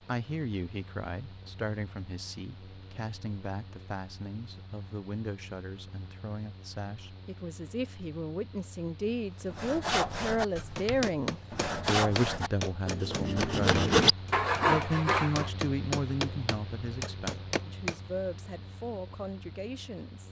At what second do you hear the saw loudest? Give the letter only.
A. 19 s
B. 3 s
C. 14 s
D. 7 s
C.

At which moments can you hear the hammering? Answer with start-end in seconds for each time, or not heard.
10.8-17.9.